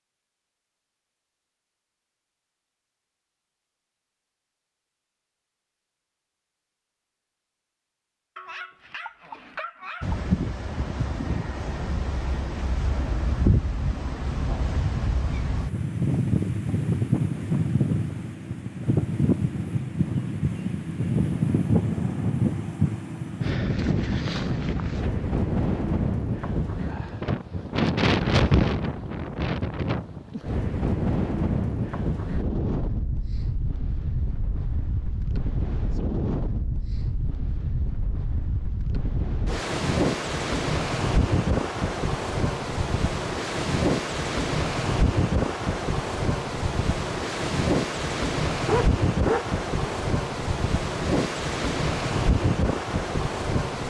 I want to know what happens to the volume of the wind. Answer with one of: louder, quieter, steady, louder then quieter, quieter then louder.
steady.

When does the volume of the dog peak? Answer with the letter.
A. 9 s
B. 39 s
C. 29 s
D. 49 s
D.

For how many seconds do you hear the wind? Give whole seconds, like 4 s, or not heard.
44 s.